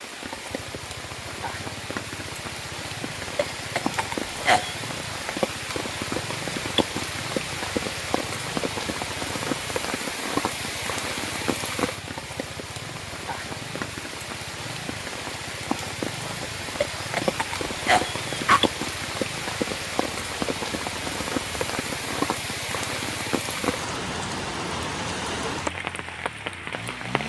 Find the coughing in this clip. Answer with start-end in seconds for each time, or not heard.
3.4-4.8, 16.8-18.6.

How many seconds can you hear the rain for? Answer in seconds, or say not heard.
27 s.